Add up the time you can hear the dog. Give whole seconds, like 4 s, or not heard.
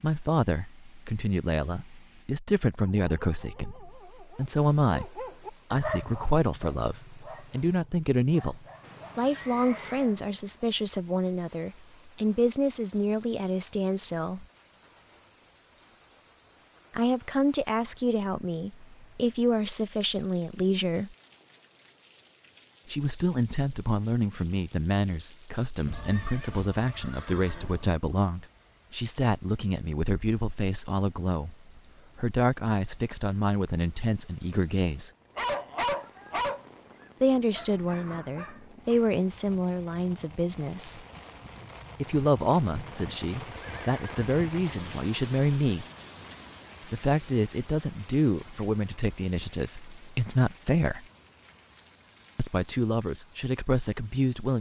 12 s.